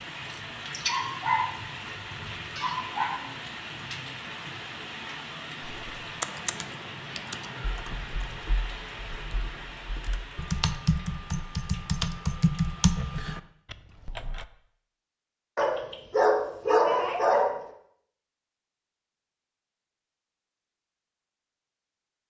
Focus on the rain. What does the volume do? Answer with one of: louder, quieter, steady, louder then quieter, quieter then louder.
quieter.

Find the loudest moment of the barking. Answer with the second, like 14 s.
17 s.